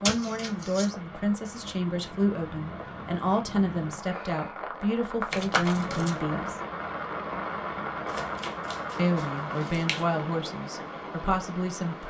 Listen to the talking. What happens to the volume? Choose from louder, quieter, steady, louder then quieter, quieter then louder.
steady.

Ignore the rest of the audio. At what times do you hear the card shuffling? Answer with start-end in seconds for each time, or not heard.
0.1-0.8, 5.3-6.2, 8.1-10.1.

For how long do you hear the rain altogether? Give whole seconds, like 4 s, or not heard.
12 s.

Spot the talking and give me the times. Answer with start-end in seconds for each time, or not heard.
0.0-6.6, 8.9-12.0.